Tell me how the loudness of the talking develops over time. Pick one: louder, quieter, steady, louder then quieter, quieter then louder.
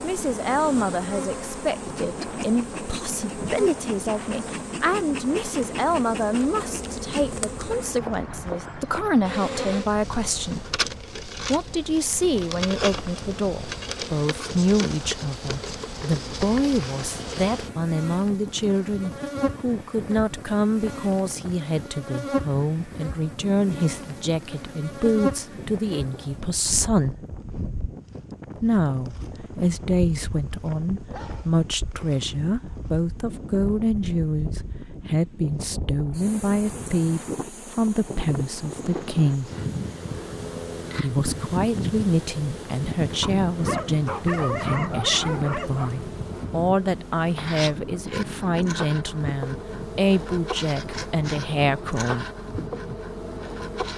steady.